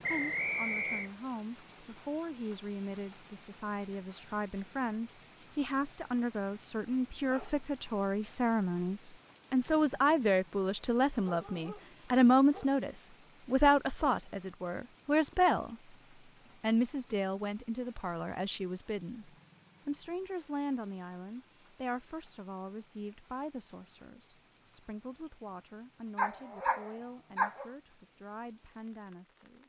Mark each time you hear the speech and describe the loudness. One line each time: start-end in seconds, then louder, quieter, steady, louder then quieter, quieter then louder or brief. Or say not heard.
0.1-15.9 louder
16.6-29.6 quieter.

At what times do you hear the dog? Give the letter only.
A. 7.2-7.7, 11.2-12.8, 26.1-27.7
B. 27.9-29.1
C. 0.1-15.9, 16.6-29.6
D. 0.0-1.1
A.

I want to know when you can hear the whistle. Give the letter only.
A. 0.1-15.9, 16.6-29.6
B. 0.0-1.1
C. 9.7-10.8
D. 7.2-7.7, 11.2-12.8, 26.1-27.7
B.